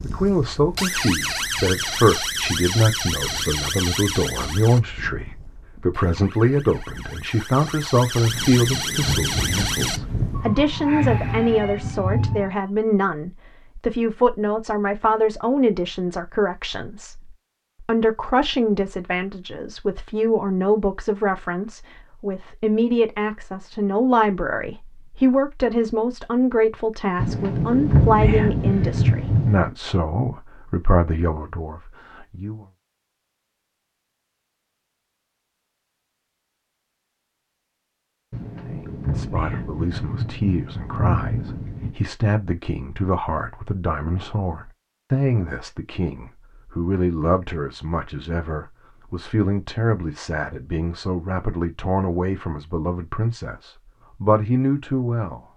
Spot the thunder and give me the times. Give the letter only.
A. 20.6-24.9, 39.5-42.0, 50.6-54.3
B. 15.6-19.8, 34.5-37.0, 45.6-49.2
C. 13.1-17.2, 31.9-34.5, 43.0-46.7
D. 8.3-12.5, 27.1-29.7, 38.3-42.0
D.